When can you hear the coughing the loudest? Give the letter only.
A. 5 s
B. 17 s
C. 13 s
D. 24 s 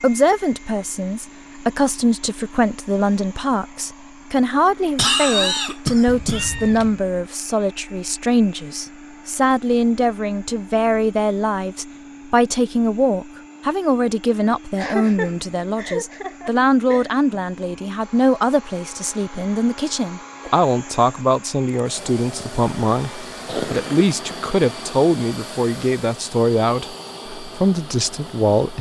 A.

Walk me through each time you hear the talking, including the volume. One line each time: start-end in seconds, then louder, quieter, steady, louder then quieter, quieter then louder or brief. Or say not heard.
0.0-28.7 steady.